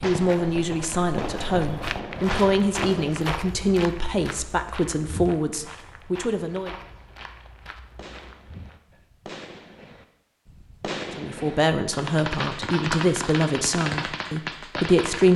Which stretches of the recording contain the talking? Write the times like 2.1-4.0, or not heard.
0.0-6.8, 11.2-15.3.